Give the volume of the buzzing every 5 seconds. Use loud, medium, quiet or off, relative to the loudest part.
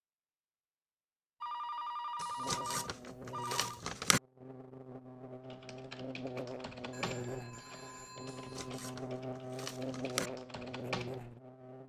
medium, loud, loud.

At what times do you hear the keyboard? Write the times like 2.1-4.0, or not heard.
5.5-11.8.